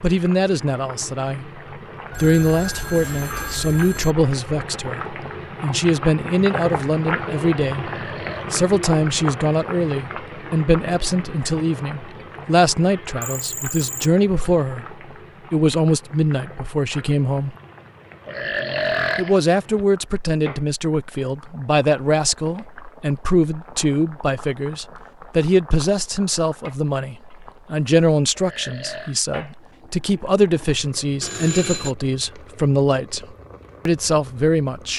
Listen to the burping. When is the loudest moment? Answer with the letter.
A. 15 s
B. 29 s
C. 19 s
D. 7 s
C.